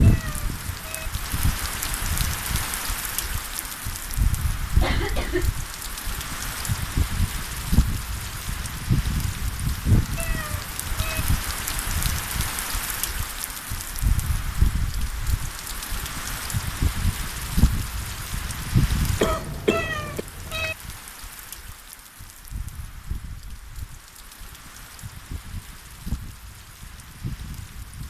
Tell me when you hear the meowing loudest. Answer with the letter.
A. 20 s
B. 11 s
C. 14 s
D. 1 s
A.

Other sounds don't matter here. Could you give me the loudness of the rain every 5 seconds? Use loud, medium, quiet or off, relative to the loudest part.
loud, loud, loud, loud, quiet, medium.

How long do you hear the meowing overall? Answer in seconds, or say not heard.
3 s.